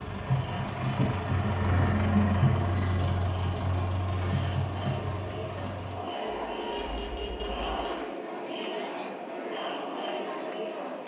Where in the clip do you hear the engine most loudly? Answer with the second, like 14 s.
2 s.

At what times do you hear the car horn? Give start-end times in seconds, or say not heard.
6.7-8.0.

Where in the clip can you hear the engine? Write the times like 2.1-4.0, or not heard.
0.0-8.1.